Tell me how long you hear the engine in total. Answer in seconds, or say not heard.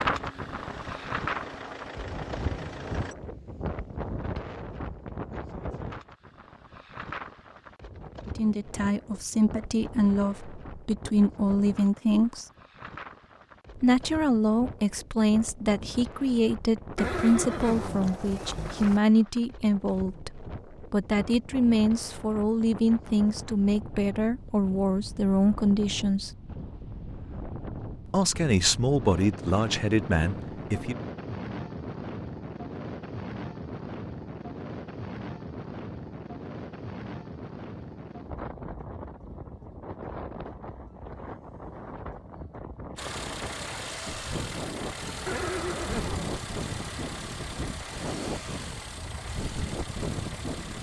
11 s.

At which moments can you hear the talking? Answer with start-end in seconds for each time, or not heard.
8.2-12.4, 13.8-26.3, 28.1-30.9.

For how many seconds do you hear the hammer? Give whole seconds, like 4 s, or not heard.
not heard.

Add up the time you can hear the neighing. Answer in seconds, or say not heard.
3 s.